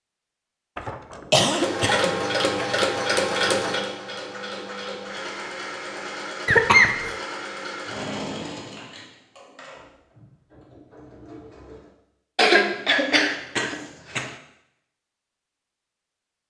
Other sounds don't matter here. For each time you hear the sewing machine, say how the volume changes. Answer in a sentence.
You can hear the sewing machine from 1.5 to 11.8 s, getting quieter.